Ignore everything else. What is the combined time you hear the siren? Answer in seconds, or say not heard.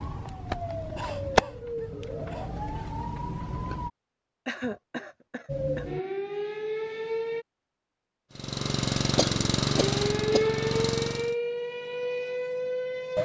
9 s.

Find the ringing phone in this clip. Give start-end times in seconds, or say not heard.
not heard.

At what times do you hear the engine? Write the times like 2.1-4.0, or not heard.
8.3-11.3.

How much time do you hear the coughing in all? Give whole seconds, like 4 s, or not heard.
4 s.